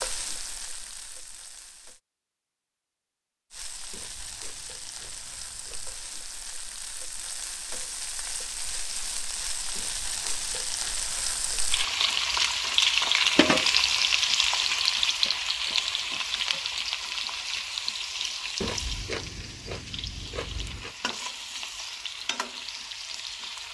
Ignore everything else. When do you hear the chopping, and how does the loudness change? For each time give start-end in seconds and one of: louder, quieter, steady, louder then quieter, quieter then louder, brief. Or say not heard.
not heard.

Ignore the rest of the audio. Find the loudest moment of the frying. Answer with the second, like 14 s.
13 s.